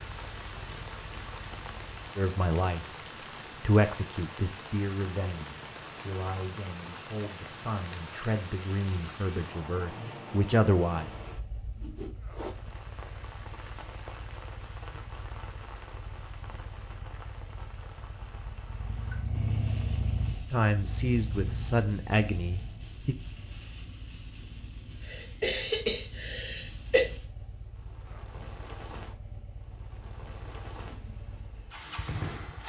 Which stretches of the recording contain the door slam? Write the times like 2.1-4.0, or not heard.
not heard.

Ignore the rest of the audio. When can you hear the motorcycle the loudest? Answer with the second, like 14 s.
20 s.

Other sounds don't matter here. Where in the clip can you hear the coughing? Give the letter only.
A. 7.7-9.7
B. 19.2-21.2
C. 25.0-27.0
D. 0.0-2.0
C.